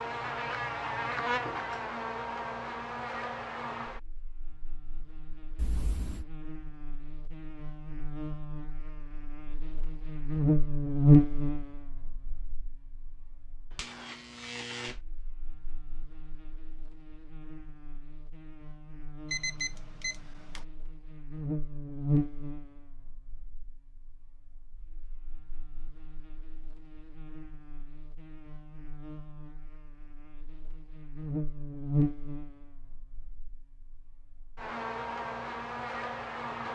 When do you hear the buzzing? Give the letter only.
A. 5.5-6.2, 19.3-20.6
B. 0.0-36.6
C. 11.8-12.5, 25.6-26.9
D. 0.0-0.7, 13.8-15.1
B.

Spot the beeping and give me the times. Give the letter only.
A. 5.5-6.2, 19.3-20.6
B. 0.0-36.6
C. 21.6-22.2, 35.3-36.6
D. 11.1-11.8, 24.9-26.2
A.